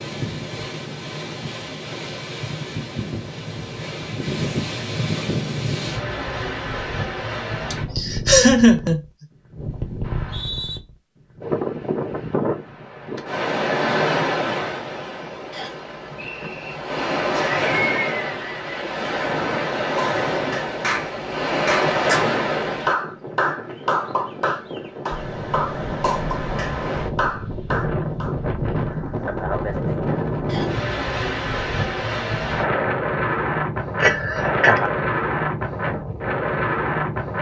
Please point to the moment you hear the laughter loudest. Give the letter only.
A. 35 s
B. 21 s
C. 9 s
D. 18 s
C.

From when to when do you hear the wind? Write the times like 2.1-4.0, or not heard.
0.0-37.3.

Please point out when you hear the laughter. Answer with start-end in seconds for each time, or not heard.
7.7-9.0, 17.4-18.8, 34.0-34.9.